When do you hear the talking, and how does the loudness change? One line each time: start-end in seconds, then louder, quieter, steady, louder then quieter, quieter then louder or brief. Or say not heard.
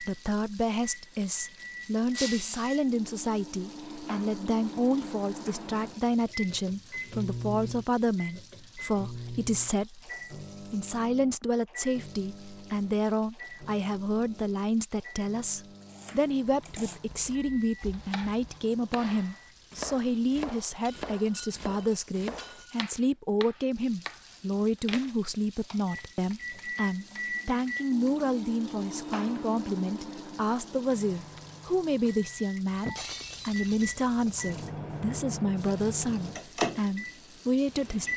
0.0-38.1 steady.